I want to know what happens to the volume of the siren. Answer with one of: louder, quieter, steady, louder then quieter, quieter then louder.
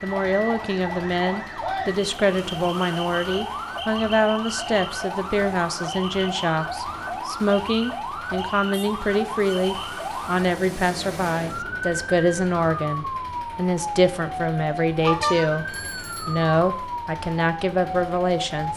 steady.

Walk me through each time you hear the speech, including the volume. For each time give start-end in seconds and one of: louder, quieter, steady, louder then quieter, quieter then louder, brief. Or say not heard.
0.0-18.7 steady.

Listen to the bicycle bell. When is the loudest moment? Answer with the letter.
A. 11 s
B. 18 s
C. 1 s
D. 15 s
D.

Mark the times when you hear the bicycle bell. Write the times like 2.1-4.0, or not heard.
15.0-16.4.